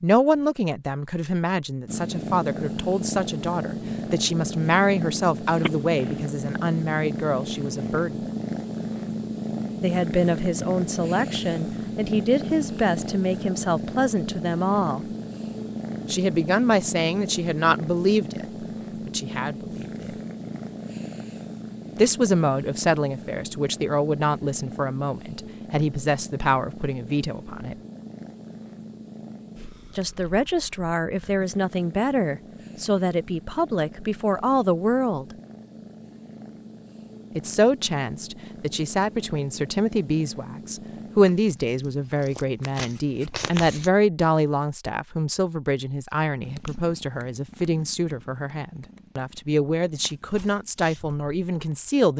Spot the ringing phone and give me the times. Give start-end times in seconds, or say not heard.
5.6-6.1.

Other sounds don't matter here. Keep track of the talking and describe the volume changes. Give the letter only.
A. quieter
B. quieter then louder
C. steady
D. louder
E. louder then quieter
C.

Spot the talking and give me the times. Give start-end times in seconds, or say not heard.
0.0-8.2, 9.8-15.1, 16.1-20.1, 21.9-27.8, 29.9-35.2, 37.4-52.1.